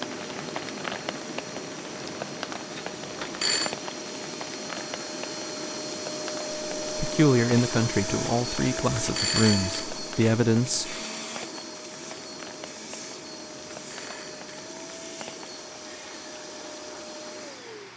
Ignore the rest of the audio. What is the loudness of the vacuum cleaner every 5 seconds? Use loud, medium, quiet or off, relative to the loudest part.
medium, loud, medium, medium.